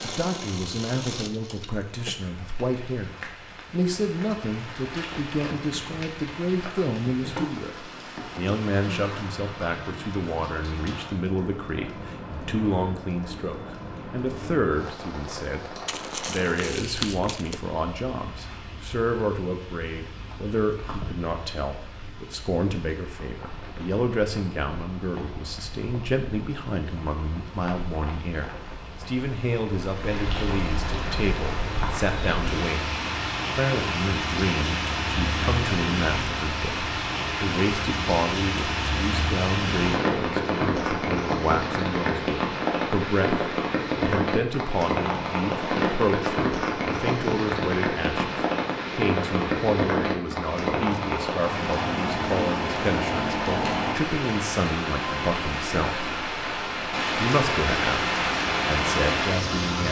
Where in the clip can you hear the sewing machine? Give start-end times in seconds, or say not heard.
0.0-2.2.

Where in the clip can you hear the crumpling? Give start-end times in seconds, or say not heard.
15.8-17.6.